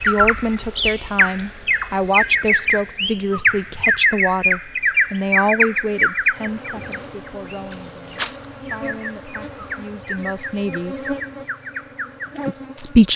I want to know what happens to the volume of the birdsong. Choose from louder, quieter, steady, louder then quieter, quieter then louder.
quieter.